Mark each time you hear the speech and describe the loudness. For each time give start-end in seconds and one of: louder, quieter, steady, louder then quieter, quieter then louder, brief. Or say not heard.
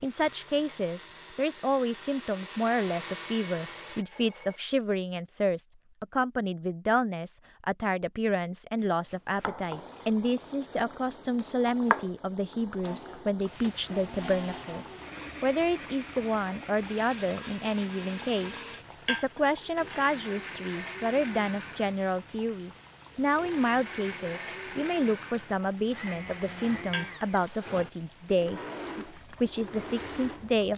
0.0-30.7 steady.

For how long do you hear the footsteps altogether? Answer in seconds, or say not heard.
not heard.